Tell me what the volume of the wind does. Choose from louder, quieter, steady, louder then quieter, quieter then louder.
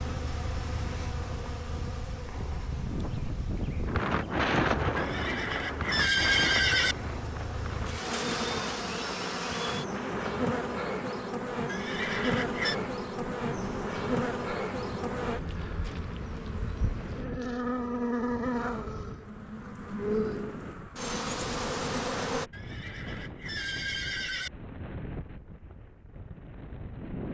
quieter.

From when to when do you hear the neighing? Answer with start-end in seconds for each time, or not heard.
5.0-7.0, 11.7-12.8, 22.5-24.5.